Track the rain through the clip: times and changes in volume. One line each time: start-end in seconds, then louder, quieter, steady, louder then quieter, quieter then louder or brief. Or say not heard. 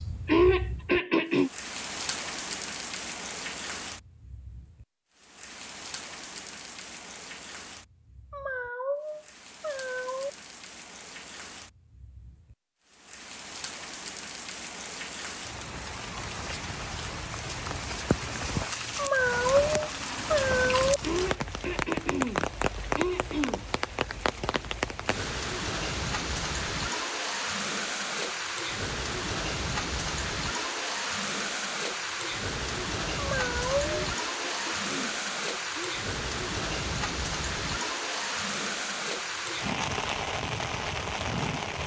0.0-41.8 louder.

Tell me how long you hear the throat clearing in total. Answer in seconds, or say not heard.
6 s.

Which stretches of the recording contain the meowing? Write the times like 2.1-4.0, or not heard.
8.3-10.3, 18.9-21.0, 33.1-34.0.